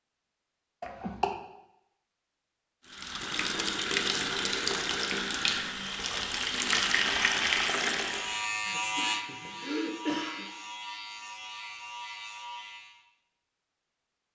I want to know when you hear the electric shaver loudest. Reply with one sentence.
The loudest moment of the electric shaver is at 9 seconds.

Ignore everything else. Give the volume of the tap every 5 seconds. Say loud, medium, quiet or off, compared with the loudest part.
loud, loud, off.